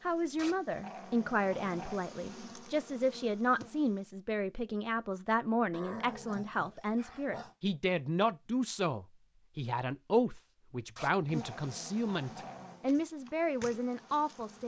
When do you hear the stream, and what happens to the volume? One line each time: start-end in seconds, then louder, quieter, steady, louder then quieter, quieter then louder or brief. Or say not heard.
not heard.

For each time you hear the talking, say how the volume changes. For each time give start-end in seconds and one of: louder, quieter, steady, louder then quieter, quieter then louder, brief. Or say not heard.
0.0-14.6 steady.